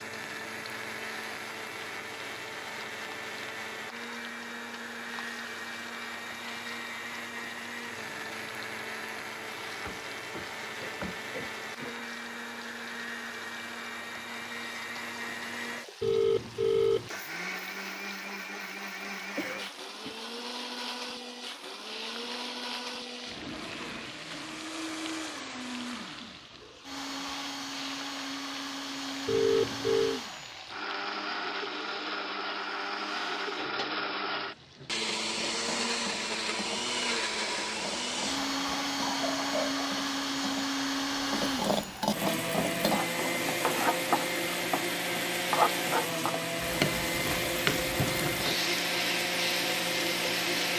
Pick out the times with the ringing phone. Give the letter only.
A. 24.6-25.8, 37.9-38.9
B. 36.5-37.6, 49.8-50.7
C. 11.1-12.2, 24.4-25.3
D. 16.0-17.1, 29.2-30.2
D.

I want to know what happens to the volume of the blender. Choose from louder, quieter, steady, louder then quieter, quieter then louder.
louder.